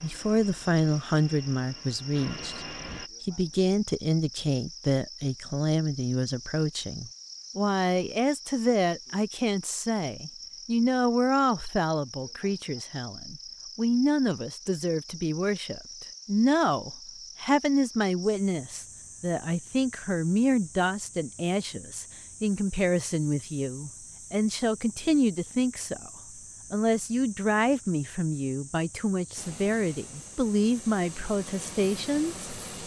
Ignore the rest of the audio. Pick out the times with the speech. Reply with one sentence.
You can hear the speech from 0.0 to 26.1 s and from 26.7 to 32.4 s.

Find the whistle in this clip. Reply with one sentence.
You can't hear the whistle here.